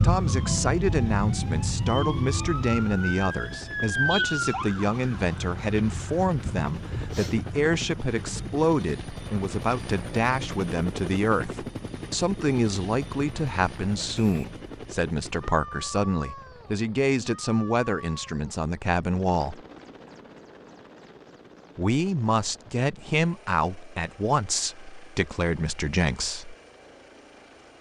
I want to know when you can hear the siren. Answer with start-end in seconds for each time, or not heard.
0.0-8.7.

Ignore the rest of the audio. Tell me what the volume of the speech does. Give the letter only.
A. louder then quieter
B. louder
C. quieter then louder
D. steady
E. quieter
D.